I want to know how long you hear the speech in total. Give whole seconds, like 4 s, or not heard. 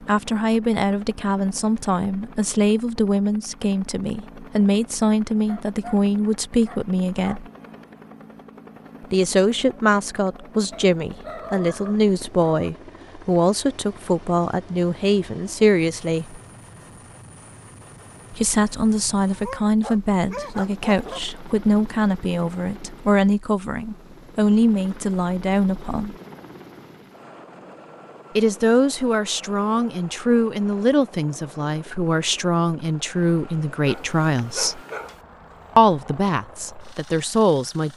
31 s.